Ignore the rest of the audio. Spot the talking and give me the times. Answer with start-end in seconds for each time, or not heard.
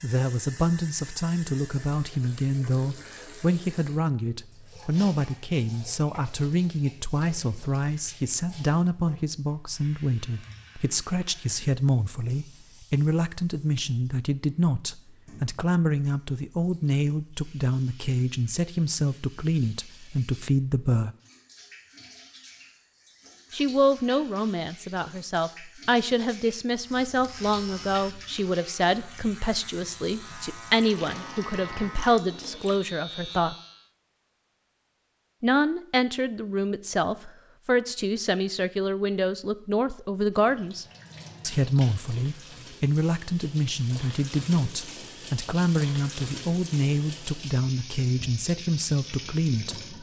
0.0-21.1, 23.5-33.5, 35.4-49.8.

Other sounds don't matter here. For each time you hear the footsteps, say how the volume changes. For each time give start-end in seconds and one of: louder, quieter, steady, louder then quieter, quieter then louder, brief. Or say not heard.
not heard.